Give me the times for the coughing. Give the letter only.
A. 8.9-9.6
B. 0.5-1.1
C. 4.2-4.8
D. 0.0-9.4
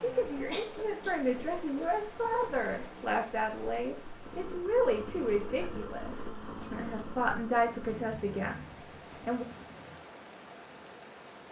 B.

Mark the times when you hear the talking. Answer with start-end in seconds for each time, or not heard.
0.0-9.4.